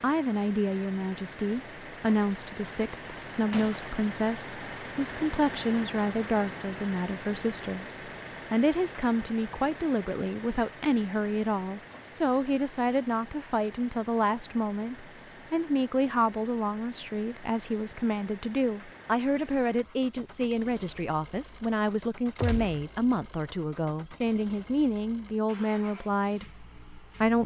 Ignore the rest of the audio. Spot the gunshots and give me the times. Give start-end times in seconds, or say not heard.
3.5-4.0, 22.4-22.9.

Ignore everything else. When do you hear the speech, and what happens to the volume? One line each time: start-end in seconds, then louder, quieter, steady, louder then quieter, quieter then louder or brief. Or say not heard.
0.0-27.4 steady.